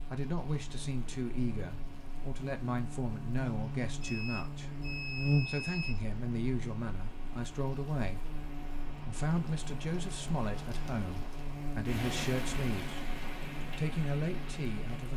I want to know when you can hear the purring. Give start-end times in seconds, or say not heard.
not heard.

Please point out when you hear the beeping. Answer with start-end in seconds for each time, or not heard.
4.0-6.1.